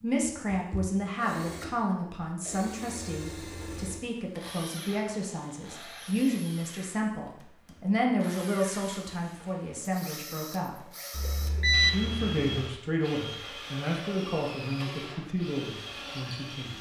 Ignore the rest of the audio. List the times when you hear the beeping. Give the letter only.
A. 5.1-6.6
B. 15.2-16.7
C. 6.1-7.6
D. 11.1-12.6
D.